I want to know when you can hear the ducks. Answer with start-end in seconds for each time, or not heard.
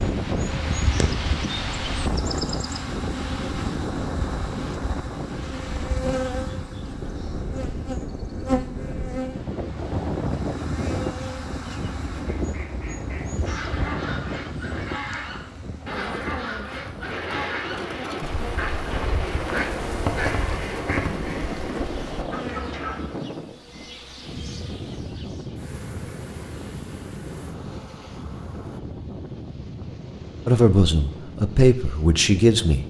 11.8-23.1.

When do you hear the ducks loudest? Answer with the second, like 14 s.
20 s.